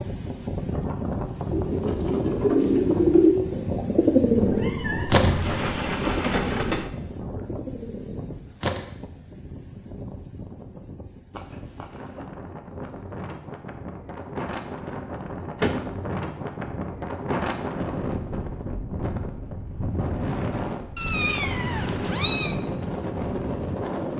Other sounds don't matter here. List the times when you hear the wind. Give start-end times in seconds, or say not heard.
0.0-24.1.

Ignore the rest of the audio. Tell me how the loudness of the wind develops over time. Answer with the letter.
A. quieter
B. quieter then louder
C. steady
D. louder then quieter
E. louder
B.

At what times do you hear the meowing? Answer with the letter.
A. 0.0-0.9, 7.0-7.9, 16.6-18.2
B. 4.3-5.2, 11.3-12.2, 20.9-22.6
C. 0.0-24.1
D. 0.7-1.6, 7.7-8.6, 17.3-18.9
B.